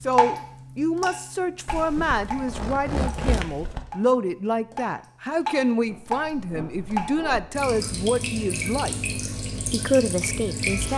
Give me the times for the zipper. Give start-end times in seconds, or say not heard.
1.6-3.9, 5.8-7.5.